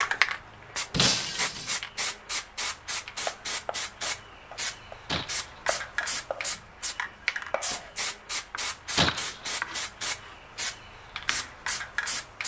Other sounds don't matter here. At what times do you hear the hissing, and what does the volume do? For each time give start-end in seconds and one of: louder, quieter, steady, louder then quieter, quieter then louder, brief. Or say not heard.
0.0-12.4 steady.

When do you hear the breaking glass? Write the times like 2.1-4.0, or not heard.
0.9-1.8, 5.0-5.6, 8.9-9.8.